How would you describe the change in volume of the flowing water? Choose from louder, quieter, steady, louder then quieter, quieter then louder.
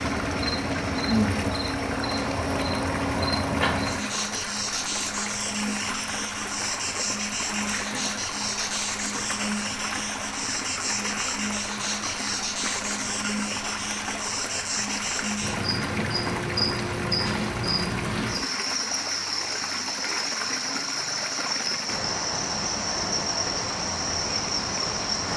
steady.